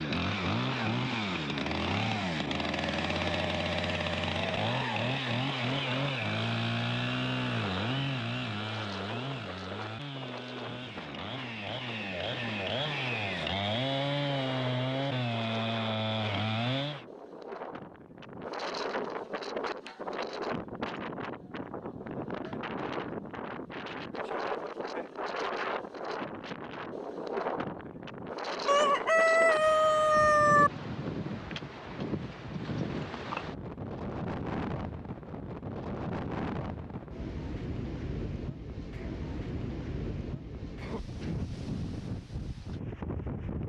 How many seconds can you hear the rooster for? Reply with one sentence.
You can hear the rooster for 2 seconds altogether.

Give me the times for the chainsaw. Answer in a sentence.
The chainsaw can be heard from 0.0 to 17.1 s.